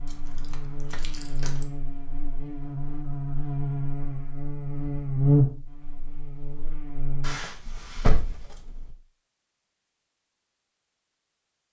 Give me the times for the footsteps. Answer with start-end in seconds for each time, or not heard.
not heard.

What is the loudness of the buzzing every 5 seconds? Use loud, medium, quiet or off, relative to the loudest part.
medium, loud, off.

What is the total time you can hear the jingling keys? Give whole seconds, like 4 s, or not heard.
3 s.